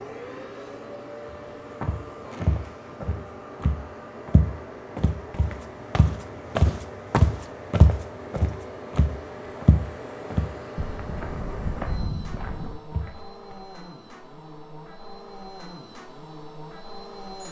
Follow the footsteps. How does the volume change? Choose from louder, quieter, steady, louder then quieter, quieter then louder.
louder then quieter.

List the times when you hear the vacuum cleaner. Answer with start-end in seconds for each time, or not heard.
0.0-17.4.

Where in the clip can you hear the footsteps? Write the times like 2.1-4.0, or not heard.
1.3-13.6.